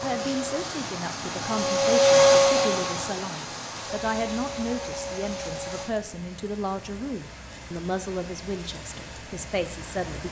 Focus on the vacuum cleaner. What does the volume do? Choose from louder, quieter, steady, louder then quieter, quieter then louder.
louder then quieter.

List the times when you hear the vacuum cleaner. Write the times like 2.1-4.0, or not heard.
0.0-6.0.